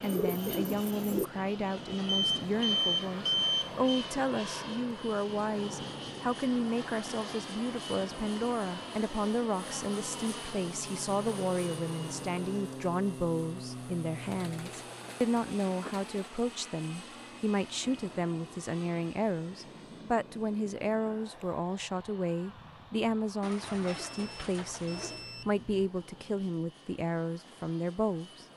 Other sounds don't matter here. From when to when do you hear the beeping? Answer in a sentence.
The beeping can be heard from 2.0 to 3.9 s and from 23.9 to 25.9 s.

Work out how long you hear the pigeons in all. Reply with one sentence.
The pigeons can be heard for 5 seconds in total.